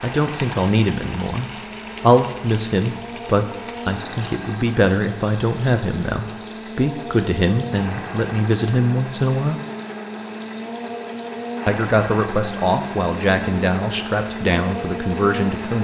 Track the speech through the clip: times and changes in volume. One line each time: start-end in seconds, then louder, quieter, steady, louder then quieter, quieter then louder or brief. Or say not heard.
0.0-9.6 steady
11.7-15.7 steady.